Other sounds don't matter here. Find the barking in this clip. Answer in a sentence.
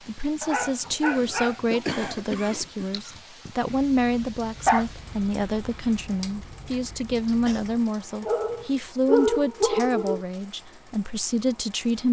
The barking can be heard from 0.4 to 1.8 s, from 4.7 to 6.0 s and from 8.2 to 10.2 s.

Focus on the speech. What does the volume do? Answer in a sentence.
The loudness of the speech stays about the same.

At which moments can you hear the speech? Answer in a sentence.
You can hear the speech from 0.1 to 12.0 s.